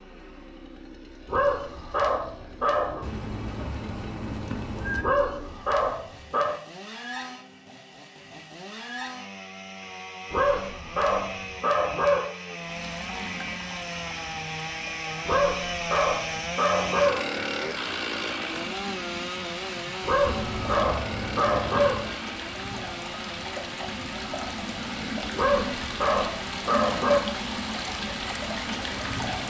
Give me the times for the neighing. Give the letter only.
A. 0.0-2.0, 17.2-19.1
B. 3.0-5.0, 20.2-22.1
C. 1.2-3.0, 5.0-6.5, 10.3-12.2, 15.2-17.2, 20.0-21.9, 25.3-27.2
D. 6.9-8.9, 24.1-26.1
B.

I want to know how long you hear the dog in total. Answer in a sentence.
You can hear the dog for 11 seconds altogether.